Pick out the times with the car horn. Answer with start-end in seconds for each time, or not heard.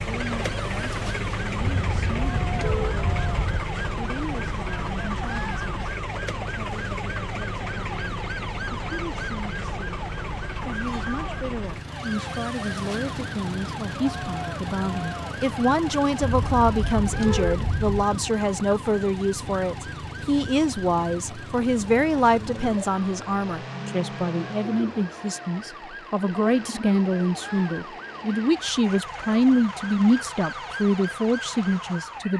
1.6-3.6, 16.2-18.1.